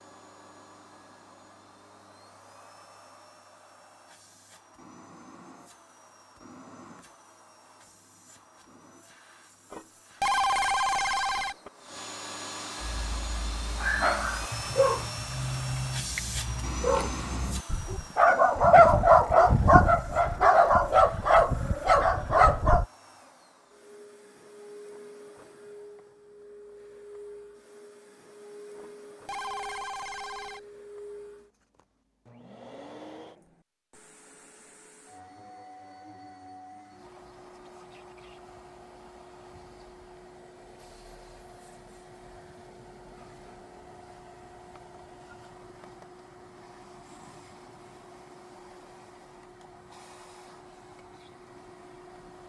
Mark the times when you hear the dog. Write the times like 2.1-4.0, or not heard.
12.8-22.9.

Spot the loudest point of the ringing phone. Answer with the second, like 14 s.
10 s.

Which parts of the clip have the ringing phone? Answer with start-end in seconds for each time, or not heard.
9.7-11.7, 28.8-30.6.